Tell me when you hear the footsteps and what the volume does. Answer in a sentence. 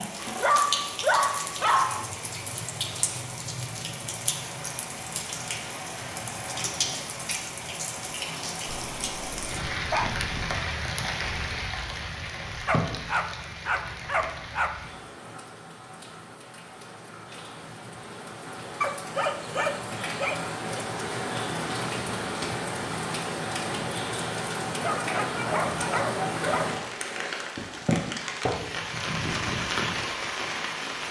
The footsteps can't be heard in this clip.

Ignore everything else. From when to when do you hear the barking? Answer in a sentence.
You can hear the barking from 0.2 to 2.0 s, from 8.7 to 10.3 s, from 12.7 to 14.7 s, from 18.8 to 20.6 s and from 24.8 to 26.8 s.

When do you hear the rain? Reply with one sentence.
You can hear the rain from 0.0 to 31.0 s.